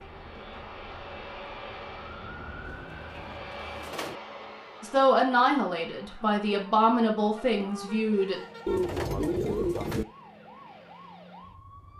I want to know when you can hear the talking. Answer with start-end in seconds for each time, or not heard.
4.8-8.4.